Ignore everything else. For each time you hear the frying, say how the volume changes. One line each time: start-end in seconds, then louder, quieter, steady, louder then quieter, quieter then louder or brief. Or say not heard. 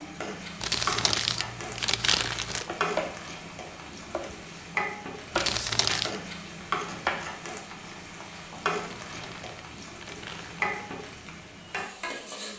0.0-12.5 steady.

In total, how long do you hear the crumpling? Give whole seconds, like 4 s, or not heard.
5 s.